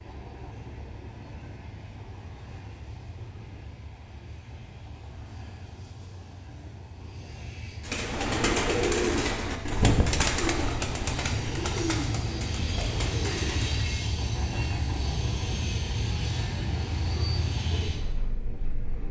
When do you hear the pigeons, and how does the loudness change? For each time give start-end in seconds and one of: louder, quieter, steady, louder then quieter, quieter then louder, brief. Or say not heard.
7.8-14.2 quieter.